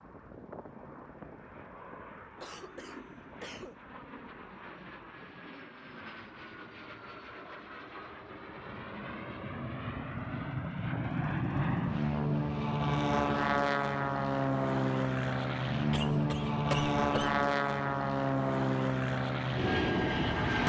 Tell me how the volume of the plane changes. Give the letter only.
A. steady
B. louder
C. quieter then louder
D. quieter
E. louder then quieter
B.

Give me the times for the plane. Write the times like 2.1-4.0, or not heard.
0.0-20.6.